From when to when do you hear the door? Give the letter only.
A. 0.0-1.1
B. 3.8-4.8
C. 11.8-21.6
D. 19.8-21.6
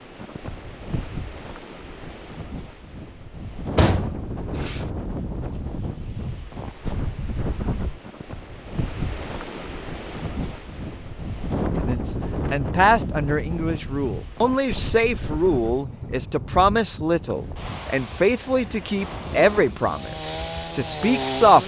B.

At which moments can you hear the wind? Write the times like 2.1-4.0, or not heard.
0.0-21.6.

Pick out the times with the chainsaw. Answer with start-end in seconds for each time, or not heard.
19.8-21.6.